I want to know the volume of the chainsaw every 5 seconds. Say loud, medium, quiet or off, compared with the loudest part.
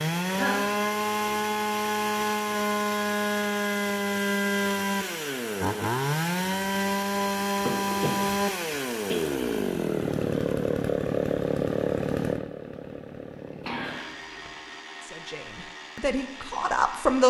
loud, loud, loud, quiet.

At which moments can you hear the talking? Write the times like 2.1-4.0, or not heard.
15.0-17.2.